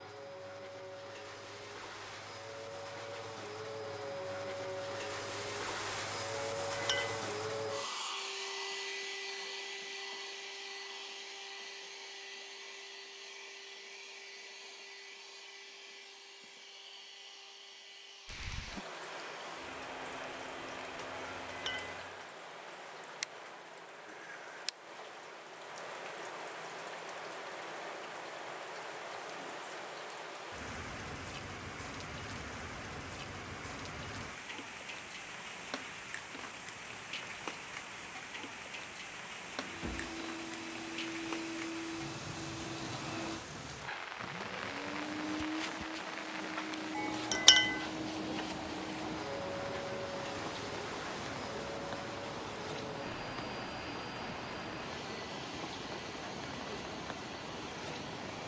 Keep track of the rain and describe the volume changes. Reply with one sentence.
The volume of the rain stays about the same.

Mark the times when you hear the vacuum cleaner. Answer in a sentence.
The vacuum cleaner can be heard from 0.0 to 22.3 s and from 39.5 to 58.4 s.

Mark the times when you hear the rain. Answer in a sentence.
The rain can be heard from 18.2 to 58.4 s.